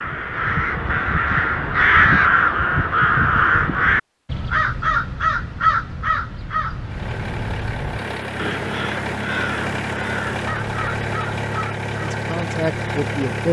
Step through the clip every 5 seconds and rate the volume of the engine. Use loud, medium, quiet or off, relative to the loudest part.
off, loud, loud.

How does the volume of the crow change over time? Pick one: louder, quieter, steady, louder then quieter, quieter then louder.
quieter.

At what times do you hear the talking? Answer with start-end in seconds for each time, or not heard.
12.1-13.4.